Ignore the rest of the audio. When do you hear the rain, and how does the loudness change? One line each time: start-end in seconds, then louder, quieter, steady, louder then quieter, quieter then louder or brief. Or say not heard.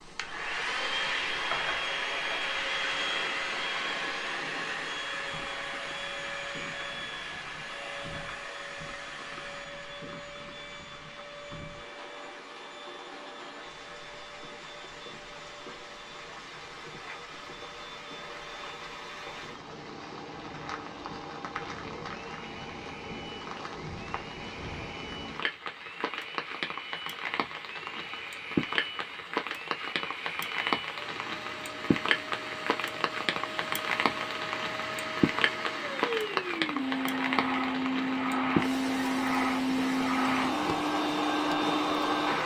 0.0-42.4 louder.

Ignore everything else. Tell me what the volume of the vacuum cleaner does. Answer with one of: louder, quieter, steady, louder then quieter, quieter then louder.
quieter then louder.